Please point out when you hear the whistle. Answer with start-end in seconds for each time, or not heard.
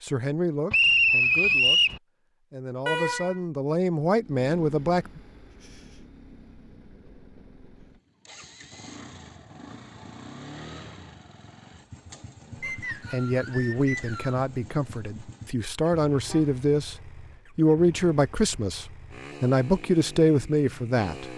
0.7-2.0, 12.6-14.4.